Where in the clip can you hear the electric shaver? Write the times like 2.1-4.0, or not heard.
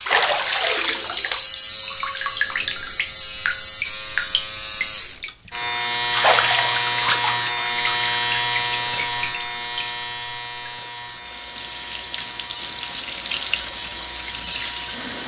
0.0-15.2.